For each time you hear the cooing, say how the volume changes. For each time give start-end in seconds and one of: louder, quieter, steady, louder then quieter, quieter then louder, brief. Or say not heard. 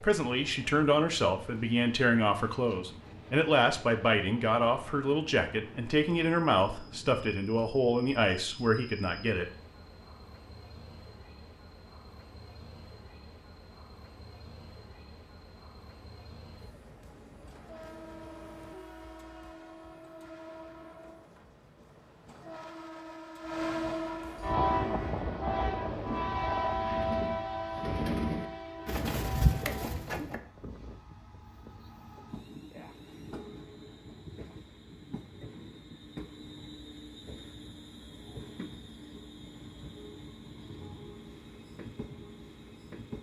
24.6-30.4 louder.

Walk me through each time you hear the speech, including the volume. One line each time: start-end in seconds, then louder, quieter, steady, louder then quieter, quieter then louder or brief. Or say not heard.
0.0-9.4 steady.